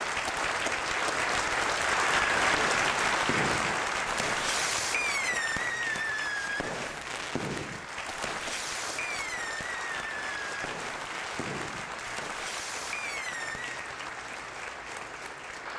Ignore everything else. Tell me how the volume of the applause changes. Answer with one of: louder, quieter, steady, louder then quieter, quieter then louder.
quieter.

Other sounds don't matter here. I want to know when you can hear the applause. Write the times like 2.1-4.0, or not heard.
0.0-15.7.